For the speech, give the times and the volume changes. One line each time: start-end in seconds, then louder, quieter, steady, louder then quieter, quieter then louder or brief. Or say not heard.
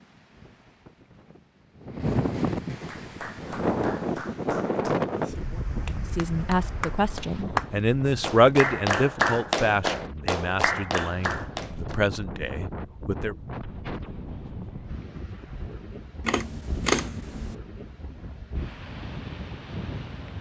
6.0-13.3 louder then quieter.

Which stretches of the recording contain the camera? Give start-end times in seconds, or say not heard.
16.2-17.6.